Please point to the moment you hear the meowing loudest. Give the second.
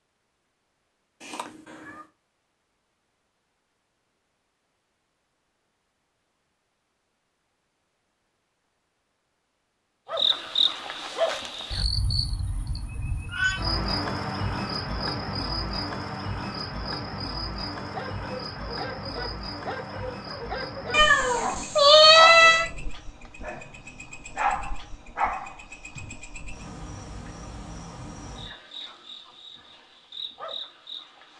22 s.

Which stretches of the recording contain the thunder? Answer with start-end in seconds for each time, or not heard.
not heard.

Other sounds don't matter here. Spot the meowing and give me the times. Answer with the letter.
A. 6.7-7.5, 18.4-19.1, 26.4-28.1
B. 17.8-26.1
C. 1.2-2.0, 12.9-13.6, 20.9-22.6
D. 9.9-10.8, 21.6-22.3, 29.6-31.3
C.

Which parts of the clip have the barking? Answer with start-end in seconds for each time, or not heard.
17.8-26.1.